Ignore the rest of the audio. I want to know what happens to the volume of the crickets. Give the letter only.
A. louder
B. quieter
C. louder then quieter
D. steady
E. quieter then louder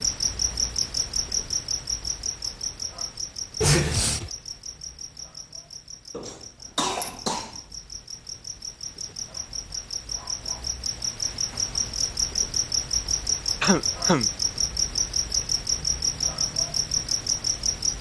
E.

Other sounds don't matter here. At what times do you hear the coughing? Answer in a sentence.
The coughing can be heard from 3.6 to 4.3 s, from 6.1 to 7.5 s and from 13.6 to 14.3 s.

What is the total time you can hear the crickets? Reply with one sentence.
The crickets can be heard for 18 seconds in total.